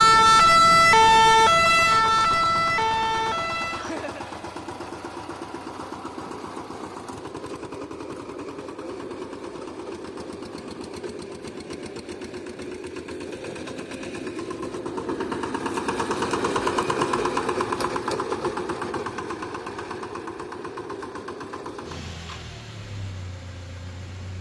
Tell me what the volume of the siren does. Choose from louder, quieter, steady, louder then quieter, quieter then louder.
quieter.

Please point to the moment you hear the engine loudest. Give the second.
17 s.